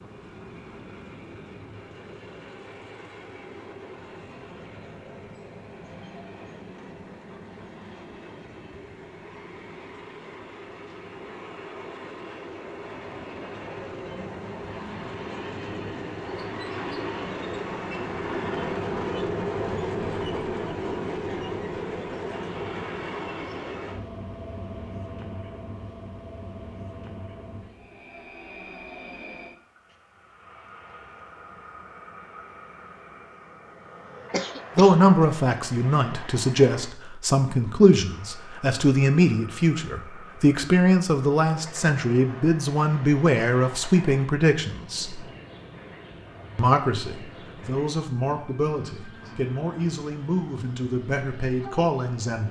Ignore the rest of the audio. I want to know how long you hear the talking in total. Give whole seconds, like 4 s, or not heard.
16 s.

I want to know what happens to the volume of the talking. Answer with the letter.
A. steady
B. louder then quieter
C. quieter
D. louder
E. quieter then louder
C.